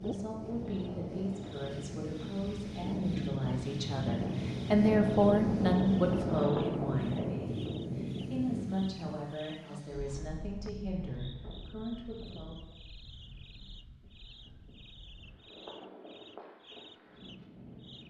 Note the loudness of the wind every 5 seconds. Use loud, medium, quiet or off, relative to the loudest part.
loud, loud, quiet, quiet.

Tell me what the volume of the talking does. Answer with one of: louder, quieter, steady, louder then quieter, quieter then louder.
louder then quieter.